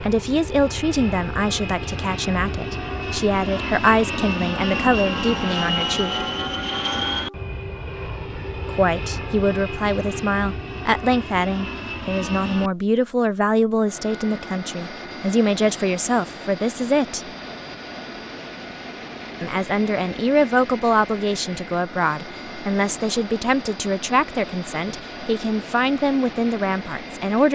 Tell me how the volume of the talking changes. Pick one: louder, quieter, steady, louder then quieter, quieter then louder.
steady.